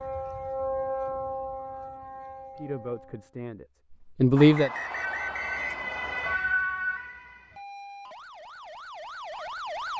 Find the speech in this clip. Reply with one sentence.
The speech can be heard from 2.5 to 4.7 s.